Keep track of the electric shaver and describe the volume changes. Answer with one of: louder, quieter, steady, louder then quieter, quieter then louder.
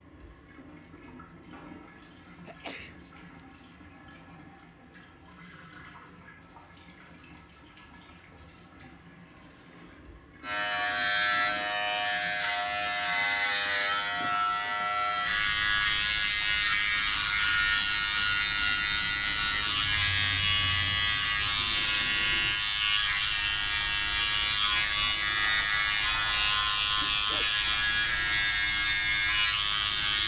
steady.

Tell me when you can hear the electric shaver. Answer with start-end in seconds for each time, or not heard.
10.4-30.2.